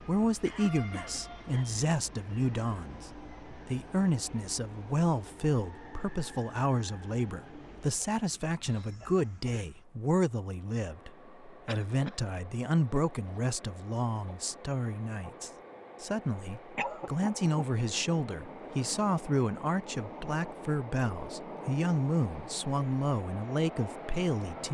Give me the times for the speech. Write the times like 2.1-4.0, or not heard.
0.1-24.6.